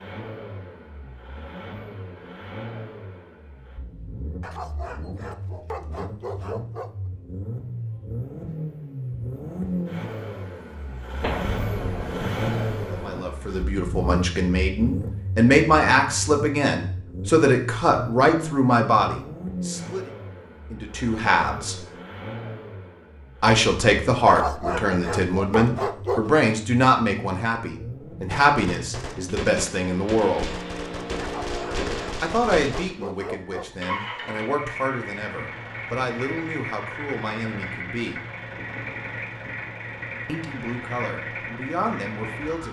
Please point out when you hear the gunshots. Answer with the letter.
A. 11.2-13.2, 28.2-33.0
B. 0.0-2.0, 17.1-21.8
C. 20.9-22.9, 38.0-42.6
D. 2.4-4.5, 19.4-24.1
A.